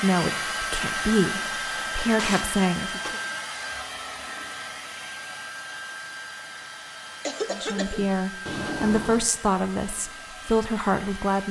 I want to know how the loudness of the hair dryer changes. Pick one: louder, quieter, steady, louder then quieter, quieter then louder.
quieter.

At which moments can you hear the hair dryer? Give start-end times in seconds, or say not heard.
0.0-11.4.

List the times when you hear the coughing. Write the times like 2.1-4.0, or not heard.
7.2-8.1.